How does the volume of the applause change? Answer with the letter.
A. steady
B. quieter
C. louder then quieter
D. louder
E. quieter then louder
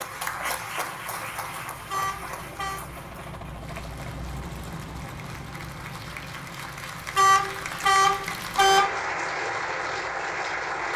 E.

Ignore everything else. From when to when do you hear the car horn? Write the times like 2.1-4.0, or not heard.
1.9-2.9, 7.2-8.9.